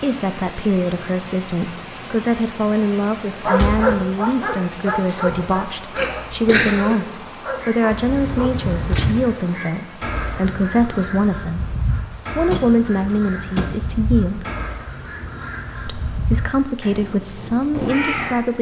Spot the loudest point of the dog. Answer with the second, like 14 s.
4 s.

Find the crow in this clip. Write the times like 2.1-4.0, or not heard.
7.5-18.4.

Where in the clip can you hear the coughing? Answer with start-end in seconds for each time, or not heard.
6.0-7.0.